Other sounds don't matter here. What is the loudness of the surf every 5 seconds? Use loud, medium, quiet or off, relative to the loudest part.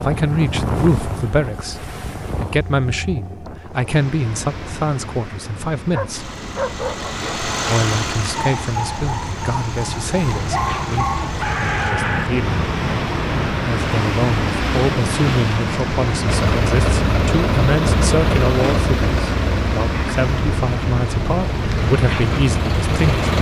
medium, medium, loud, loud, loud.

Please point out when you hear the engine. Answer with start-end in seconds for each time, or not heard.
6.1-11.9, 16.2-23.3.